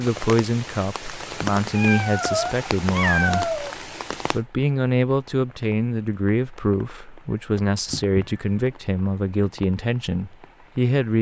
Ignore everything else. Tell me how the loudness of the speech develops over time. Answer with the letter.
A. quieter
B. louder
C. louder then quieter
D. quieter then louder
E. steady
E.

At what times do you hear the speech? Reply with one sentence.
The speech can be heard from 0.0 to 3.6 s and from 4.3 to 11.1 s.